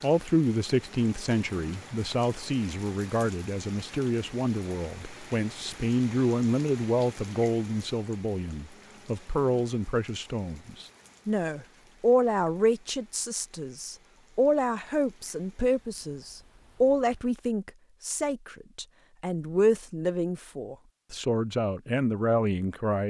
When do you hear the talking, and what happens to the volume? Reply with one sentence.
You can hear the talking from 0.0 to 23.0 s, at a steady volume.